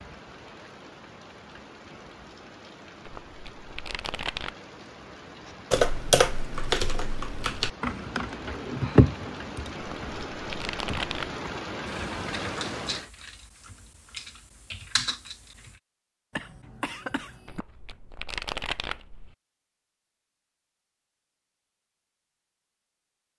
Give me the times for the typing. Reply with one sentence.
You can hear the typing from 5.7 to 15.8 s.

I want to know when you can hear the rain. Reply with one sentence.
The rain can be heard from 0.0 to 13.1 s.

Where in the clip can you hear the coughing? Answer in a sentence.
The coughing can be heard from 16.3 to 17.6 s.